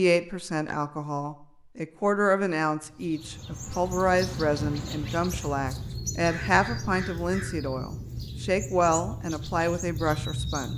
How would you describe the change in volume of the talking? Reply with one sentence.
The loudness of the talking stays about the same.